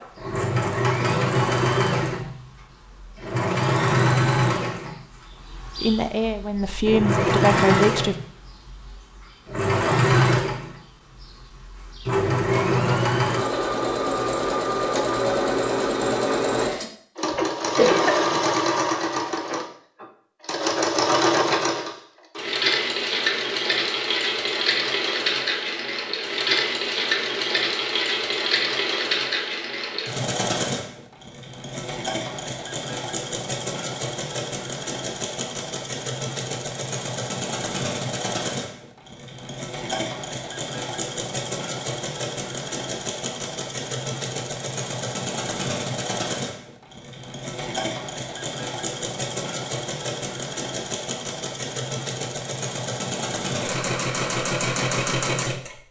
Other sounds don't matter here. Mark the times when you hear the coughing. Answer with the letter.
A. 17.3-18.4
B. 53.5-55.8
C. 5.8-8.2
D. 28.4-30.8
A.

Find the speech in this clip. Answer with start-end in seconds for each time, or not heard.
5.8-8.2.